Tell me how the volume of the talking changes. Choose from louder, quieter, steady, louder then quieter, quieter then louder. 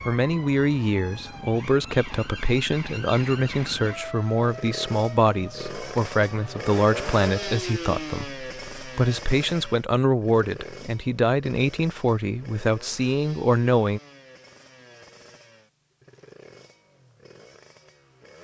steady.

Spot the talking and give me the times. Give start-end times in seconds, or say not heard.
0.1-14.0.